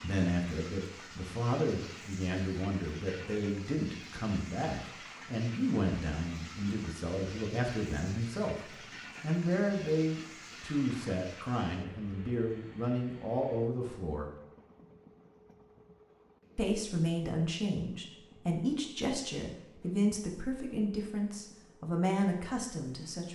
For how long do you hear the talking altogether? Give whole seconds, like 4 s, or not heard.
21 s.